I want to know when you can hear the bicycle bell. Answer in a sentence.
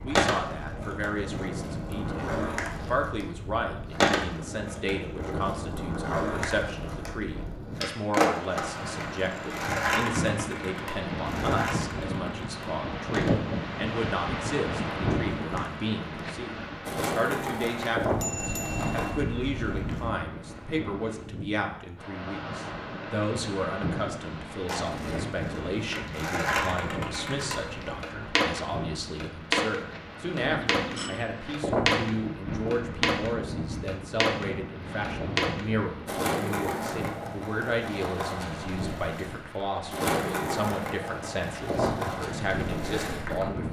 The bicycle bell can be heard from 18.1 to 20.1 s and from 30.4 to 31.3 s.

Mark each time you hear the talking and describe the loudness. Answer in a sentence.
You can hear the talking from 0.0 to 43.6 s, at a steady volume.